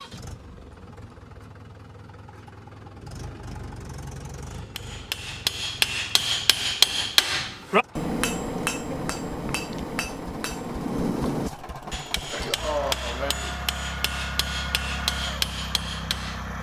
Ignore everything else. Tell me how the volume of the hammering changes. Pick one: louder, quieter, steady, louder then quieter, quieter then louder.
quieter.